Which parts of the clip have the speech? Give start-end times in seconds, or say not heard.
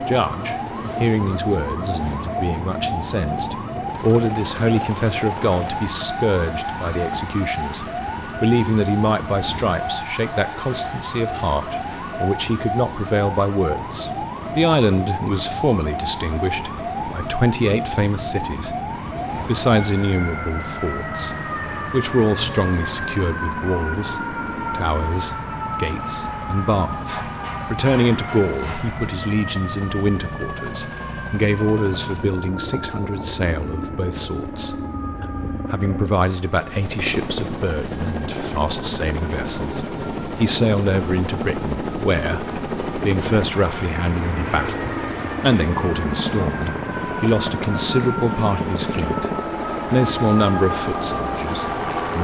0.0-18.8, 19.4-49.3, 49.9-52.2.